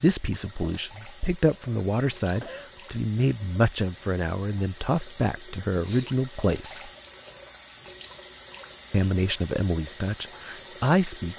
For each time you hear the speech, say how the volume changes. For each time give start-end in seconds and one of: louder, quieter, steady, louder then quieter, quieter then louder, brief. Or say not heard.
0.0-6.9 steady
8.9-11.3 brief.